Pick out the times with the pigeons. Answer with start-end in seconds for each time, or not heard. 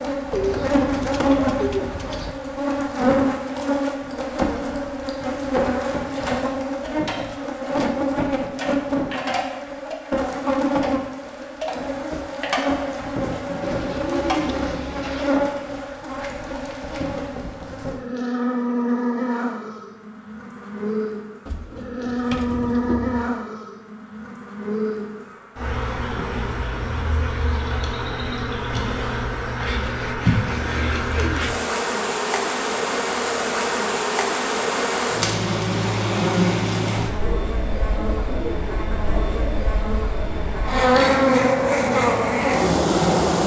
0.3-2.4, 13.6-15.3, 21.4-23.2, 29.6-31.5, 37.0-39.6.